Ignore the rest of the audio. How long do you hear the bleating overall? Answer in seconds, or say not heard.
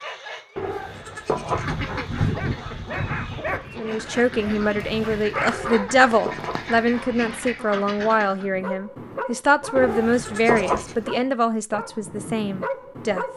5 s.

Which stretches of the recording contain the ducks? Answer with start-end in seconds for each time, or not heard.
1.4-8.5.